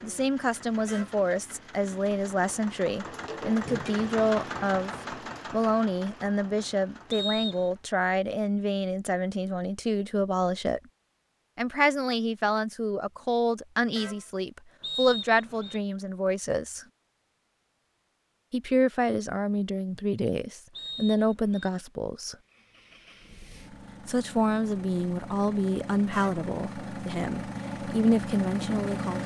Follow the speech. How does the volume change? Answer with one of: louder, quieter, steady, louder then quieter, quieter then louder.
steady.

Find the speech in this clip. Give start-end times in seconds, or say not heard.
0.0-10.8, 11.6-16.9, 18.5-22.4, 24.1-29.2.